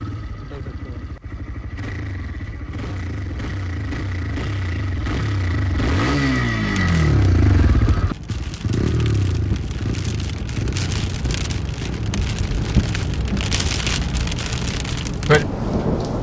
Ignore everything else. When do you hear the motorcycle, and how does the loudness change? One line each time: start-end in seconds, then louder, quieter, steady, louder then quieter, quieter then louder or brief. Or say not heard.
0.0-16.1 louder then quieter.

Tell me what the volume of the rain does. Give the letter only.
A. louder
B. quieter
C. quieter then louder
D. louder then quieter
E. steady
A.